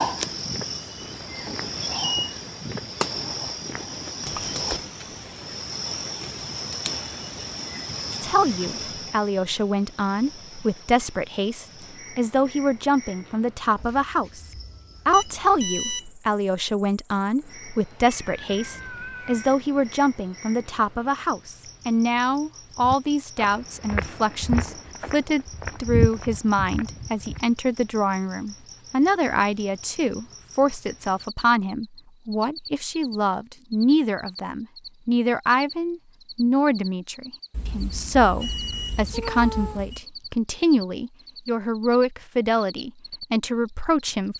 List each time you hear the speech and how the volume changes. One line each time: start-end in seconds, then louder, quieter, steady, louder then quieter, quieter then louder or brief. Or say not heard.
8.2-44.3 steady.